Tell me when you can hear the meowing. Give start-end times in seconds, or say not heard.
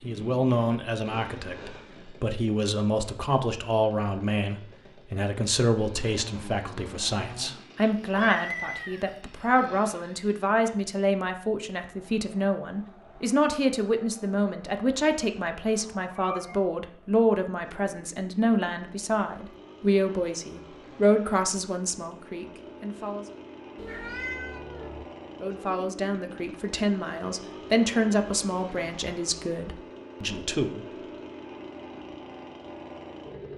8.0-9.2, 16.1-16.7, 23.8-25.1.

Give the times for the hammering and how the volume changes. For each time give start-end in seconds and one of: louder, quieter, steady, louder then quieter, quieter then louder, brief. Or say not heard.
not heard.